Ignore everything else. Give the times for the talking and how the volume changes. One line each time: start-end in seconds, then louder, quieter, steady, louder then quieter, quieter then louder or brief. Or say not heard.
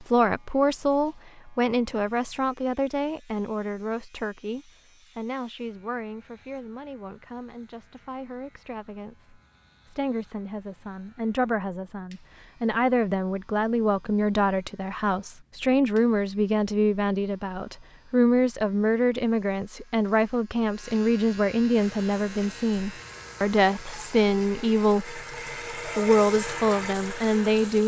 0.0-27.8 quieter then louder.